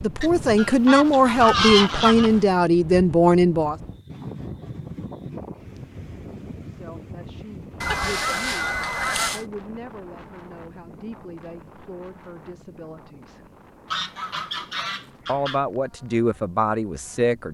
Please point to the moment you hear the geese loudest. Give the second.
2 s.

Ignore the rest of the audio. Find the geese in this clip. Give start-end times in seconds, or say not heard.
0.2-2.5, 7.8-9.4, 13.9-15.6.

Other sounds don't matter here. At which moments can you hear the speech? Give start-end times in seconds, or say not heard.
0.0-3.8, 6.7-13.5, 15.2-17.5.